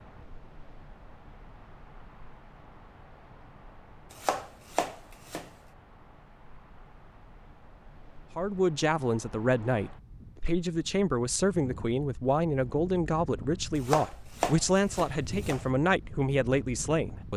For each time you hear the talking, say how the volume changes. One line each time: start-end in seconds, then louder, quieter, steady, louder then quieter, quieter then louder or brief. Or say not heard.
8.3-17.3 steady.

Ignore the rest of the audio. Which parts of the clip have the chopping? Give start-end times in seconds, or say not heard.
4.1-5.5, 13.8-15.7.